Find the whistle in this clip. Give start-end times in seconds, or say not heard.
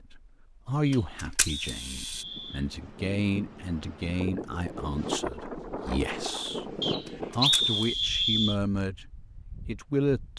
0.8-2.6, 6.8-8.6.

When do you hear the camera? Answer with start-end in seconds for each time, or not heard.
0.9-2.2, 7.0-7.8.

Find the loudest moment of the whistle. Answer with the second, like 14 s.
8 s.